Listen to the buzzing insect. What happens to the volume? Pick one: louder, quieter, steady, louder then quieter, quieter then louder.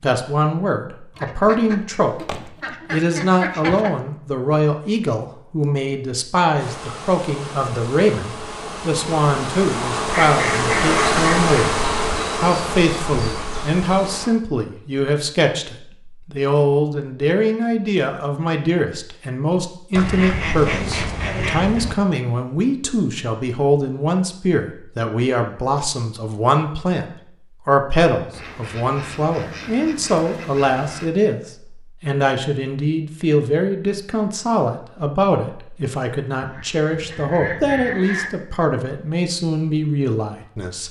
louder then quieter.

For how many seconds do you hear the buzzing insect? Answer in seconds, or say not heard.
8 s.